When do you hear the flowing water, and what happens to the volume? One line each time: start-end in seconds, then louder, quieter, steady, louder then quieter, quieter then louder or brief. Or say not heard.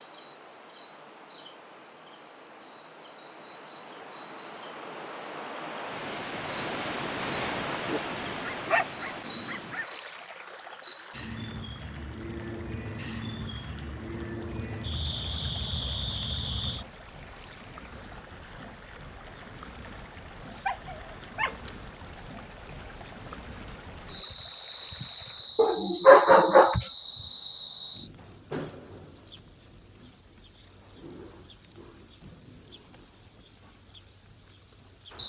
0.0-25.6 louder then quieter.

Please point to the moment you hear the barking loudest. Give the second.
26 s.